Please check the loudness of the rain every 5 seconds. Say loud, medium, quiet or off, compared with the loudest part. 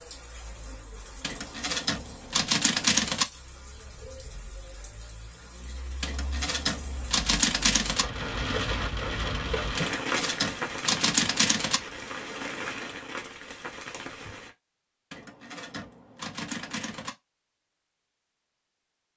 quiet, loud, loud, off.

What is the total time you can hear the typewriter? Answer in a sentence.
The typewriter can be heard for 8 seconds in total.